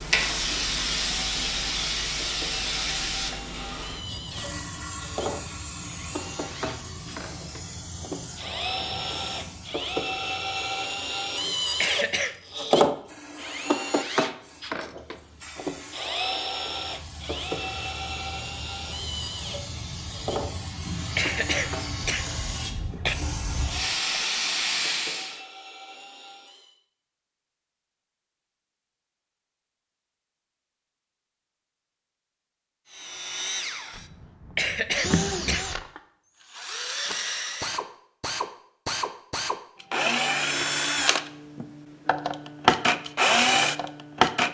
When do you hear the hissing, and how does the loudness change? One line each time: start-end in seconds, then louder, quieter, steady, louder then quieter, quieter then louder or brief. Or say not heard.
0.0-25.4 quieter then louder.